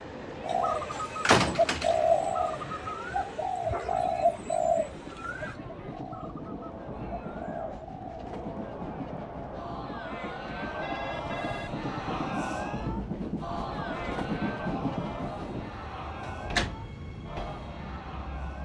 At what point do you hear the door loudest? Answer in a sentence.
The loudest moment of the door is at 1 second.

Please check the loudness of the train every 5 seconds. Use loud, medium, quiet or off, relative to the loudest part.
medium, medium, loud, medium.